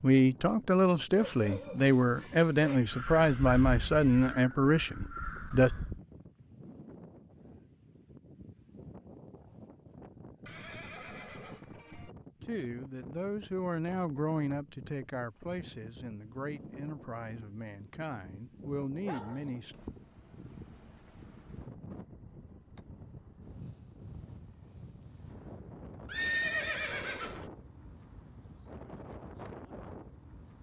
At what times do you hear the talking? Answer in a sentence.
The talking can be heard from 0.0 to 5.7 s and from 12.4 to 19.8 s.